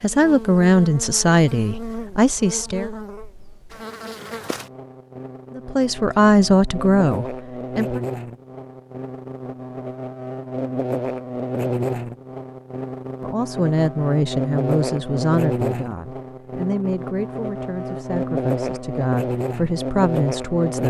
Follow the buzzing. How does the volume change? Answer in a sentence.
The volume of the buzzing goes up.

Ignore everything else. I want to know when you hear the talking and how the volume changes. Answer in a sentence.
The talking can be heard briefly from 0.0 to 2.9 s; briefly from 5.5 to 8.0 s; and from 13.2 to 20.8 s, getting quieter then louder.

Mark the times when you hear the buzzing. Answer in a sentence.
You can hear the buzzing from 0.0 to 20.8 s.